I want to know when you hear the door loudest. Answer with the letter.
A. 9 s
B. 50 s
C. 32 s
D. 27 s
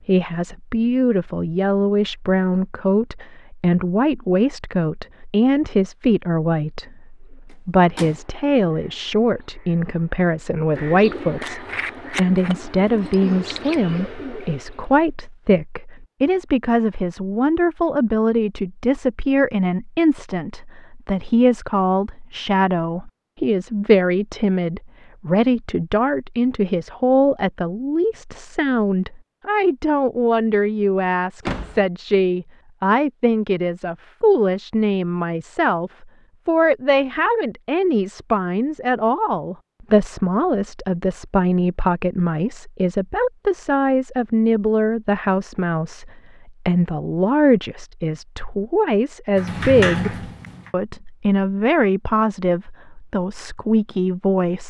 B.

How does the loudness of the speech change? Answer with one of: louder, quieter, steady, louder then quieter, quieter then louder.
steady.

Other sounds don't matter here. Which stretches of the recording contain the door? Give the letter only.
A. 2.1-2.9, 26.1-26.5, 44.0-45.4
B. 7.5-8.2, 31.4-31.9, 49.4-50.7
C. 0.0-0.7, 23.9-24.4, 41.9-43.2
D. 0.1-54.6
B.